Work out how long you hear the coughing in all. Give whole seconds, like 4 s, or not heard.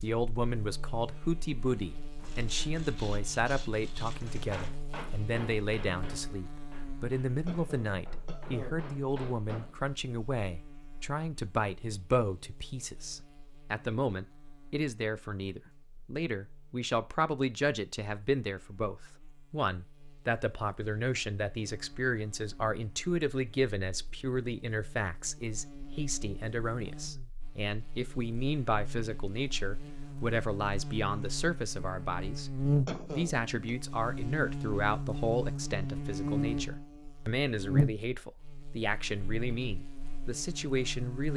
2 s.